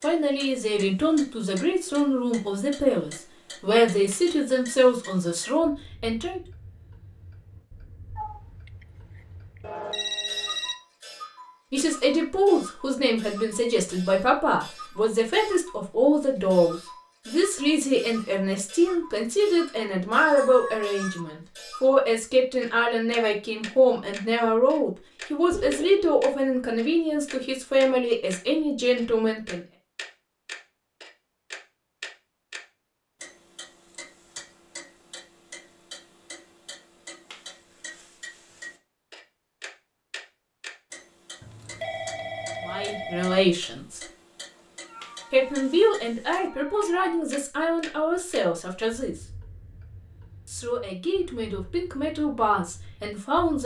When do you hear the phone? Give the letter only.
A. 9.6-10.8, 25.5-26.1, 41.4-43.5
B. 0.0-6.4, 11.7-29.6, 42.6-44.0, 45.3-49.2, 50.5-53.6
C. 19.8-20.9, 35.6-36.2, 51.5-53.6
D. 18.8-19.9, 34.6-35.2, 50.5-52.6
A.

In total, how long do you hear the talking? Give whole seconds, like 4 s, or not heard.
33 s.